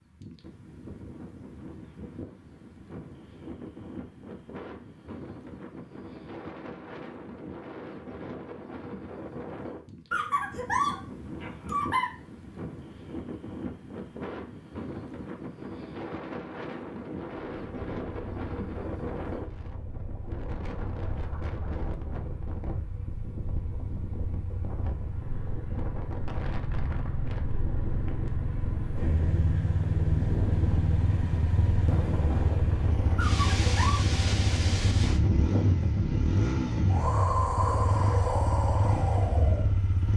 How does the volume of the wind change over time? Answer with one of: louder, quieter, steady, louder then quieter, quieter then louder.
louder.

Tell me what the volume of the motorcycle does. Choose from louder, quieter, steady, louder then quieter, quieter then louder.
louder.